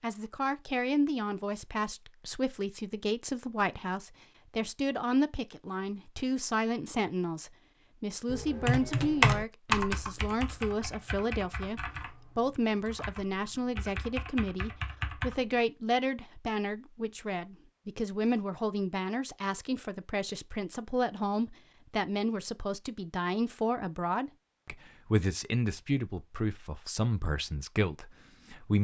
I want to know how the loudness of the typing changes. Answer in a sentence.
The loudness of the typing goes down, then up.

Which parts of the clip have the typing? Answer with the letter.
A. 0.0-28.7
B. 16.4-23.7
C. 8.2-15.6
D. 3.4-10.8
C.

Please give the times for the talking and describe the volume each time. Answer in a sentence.
You can hear the talking from 0.0 to 28.7 s, at a steady volume.